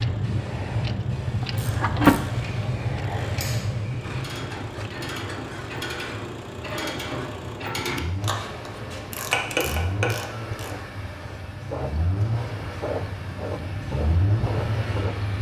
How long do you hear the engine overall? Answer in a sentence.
You can hear the engine for 15 seconds altogether.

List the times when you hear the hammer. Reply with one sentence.
You can't hear the hammer here.